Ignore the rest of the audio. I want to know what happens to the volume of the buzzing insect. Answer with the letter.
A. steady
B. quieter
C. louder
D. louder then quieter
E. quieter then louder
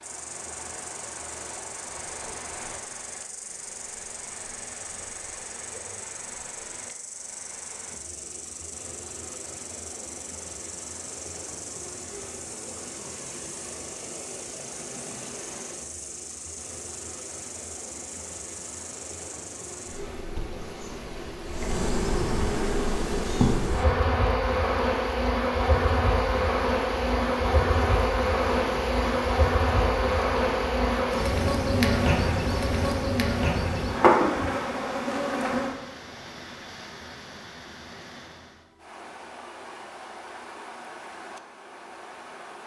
C.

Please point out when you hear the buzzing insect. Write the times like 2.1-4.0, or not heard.
0.0-35.8.